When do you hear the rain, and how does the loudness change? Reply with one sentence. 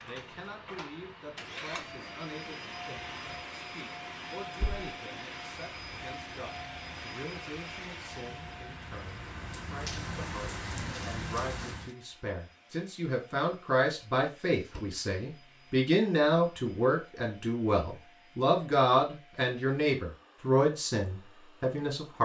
The rain can be heard from 0.0 to 11.9 s, getting louder.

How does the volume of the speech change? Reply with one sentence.
The loudness of the speech goes up.